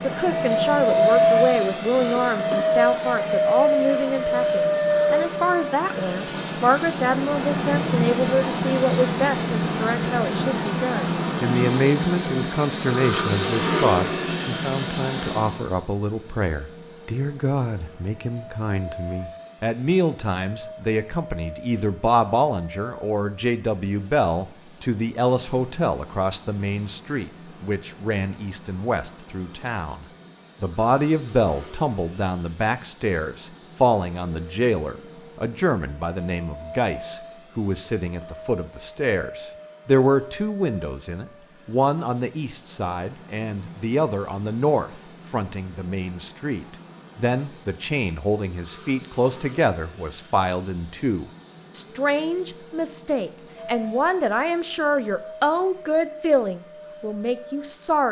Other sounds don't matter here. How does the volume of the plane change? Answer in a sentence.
The loudness of the plane goes down.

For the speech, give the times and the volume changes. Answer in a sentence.
The speech can be heard from 0.0 to 58.0 s, at a steady volume.